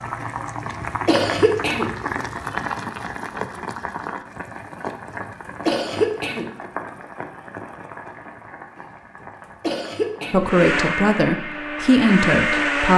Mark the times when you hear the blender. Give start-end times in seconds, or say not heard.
10.4-12.9.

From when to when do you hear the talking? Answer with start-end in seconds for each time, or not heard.
10.3-12.9.